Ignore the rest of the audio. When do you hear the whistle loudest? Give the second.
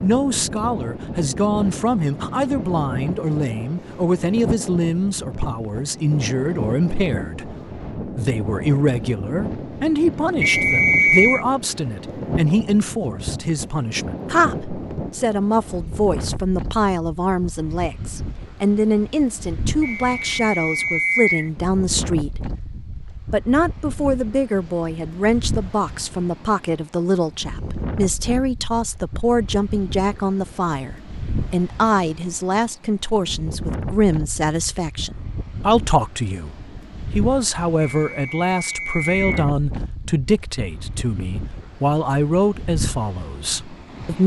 11 s.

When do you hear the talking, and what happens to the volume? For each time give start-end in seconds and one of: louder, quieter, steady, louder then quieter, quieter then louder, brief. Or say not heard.
0.0-44.2 steady.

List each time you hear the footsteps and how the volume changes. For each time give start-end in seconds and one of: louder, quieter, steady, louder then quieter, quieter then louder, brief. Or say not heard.
not heard.